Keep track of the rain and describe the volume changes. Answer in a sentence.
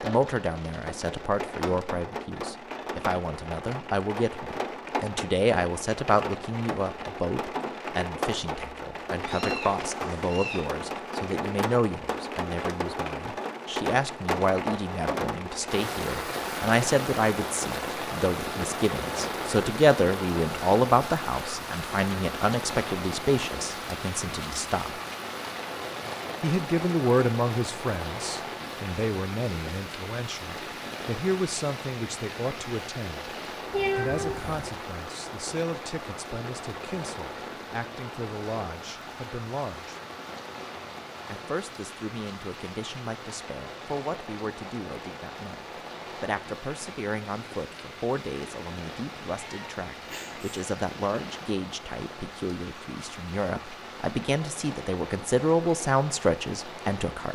The volume of the rain goes down.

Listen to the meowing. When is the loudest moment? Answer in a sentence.
The loudest moment of the meowing is at 34 seconds.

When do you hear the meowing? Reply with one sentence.
You can hear the meowing from 9.2 to 10.7 s, from 33.7 to 34.6 s and from 49.3 to 50.5 s.